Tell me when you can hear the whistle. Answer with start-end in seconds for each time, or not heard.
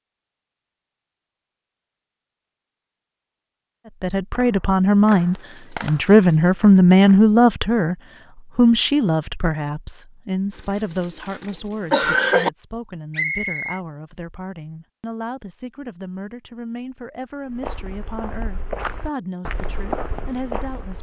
13.1-13.8.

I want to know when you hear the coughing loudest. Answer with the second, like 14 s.
12 s.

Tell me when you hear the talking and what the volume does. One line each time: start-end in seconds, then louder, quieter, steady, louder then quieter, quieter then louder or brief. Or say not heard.
3.9-20.9 quieter.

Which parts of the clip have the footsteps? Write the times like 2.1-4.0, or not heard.
17.4-20.9.